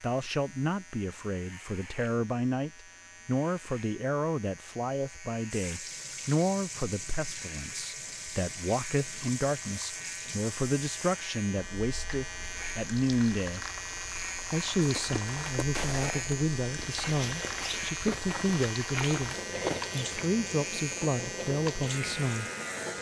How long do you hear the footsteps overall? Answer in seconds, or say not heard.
5 s.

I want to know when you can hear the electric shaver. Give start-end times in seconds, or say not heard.
0.0-22.9.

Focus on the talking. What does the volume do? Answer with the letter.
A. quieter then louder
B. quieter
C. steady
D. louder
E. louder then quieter
C.